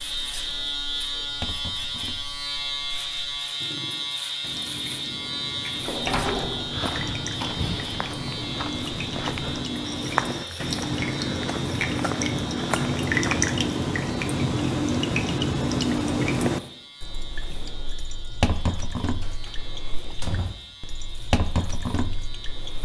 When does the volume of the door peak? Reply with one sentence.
The loudest moment of the door is at 6 seconds.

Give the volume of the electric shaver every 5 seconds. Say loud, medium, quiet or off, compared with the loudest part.
loud, loud, medium, quiet, quiet.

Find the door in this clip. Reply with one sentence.
The door can be heard from 5.8 to 6.7 s and from 19.2 to 20.6 s.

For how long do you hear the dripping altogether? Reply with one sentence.
The dripping can be heard for 23 seconds in total.